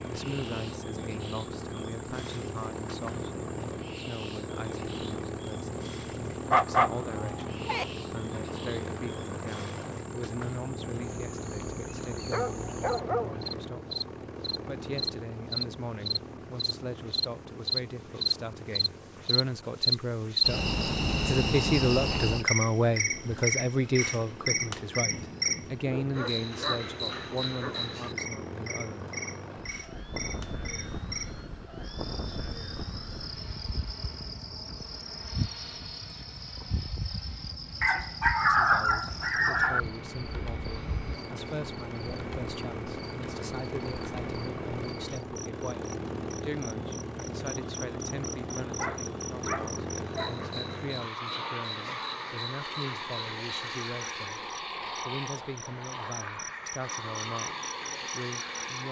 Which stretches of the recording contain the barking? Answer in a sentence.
You can hear the barking from 6.5 to 7.8 s, from 12.3 to 13.4 s, from 25.9 to 27.8 s, from 37.8 to 39.8 s and from 48.8 to 50.5 s.